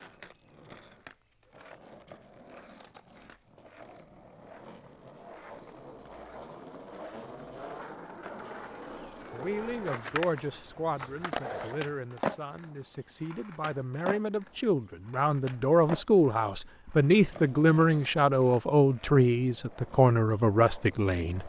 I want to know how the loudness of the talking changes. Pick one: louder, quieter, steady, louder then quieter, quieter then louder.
louder.